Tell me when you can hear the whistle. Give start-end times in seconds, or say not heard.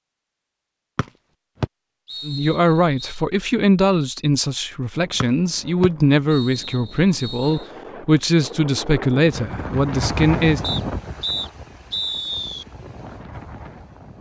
0.9-3.1, 5.2-7.6, 10.6-12.7.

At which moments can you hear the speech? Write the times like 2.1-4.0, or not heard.
2.2-10.6.